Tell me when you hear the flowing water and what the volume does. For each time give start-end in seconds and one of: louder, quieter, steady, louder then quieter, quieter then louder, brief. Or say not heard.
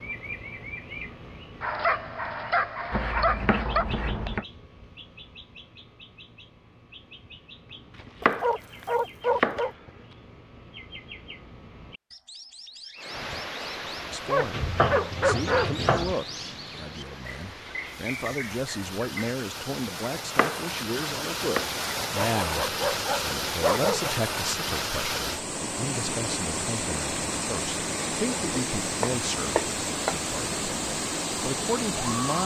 12.9-32.4 louder.